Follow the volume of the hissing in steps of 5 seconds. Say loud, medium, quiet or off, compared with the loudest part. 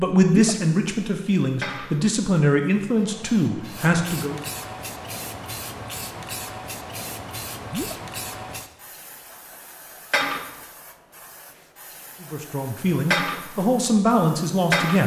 medium, medium, loud.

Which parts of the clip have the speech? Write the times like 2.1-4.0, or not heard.
0.0-4.4, 12.2-15.0.